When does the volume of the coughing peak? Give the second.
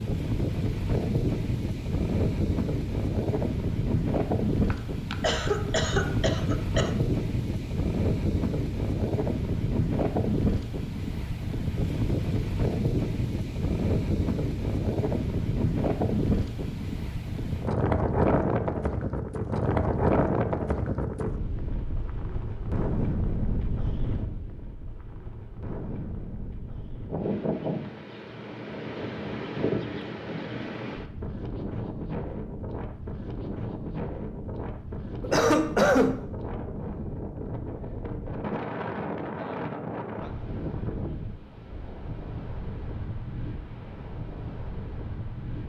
36 s.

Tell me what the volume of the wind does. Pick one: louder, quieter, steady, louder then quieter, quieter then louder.
quieter.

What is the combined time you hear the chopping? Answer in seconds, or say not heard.
not heard.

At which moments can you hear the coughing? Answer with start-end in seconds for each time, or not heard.
4.7-6.9, 35.2-36.2.